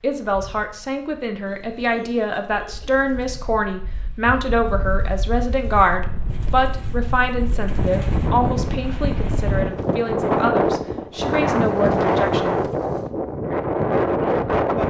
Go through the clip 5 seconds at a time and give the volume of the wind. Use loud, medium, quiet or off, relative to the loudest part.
quiet, medium, loud.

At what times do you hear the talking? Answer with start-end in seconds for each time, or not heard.
0.0-12.7.